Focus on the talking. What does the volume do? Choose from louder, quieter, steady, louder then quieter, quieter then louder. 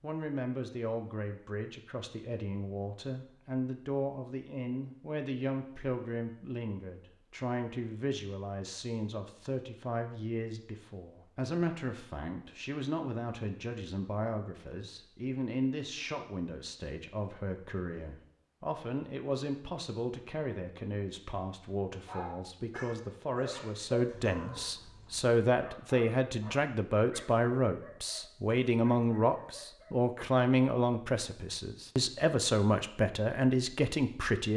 louder.